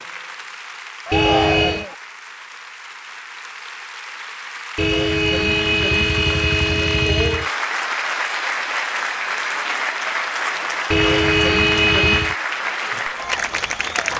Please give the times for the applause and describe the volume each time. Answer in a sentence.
You can hear the applause from 0.0 to 14.1 s, getting louder.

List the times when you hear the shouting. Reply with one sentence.
The shouting can be heard from 1.1 to 1.9 s.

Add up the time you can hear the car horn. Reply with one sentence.
The car horn can be heard for 5 seconds in total.